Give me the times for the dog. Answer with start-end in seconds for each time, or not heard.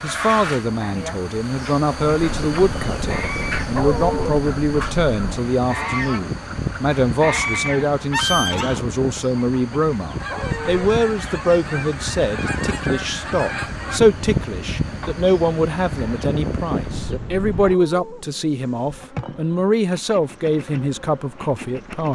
3.7-4.4, 10.2-10.8, 17.6-18.2.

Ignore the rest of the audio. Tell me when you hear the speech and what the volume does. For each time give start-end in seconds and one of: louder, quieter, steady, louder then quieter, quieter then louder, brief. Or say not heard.
0.0-22.1 steady.